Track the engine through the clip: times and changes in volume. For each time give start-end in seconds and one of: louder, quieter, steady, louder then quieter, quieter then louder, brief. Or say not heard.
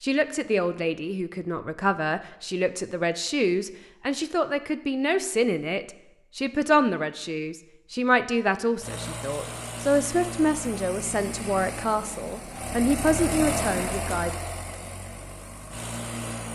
8.8-16.4 louder then quieter.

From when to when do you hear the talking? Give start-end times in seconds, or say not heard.
0.0-14.3.